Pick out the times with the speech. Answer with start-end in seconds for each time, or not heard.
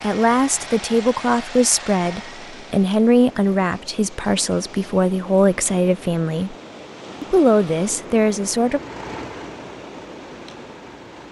0.0-6.5, 7.2-8.8.